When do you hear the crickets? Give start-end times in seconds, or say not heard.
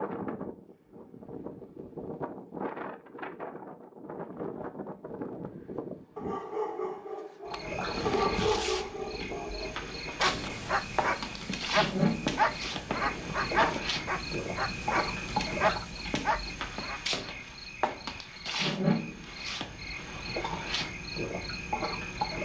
7.5-22.4.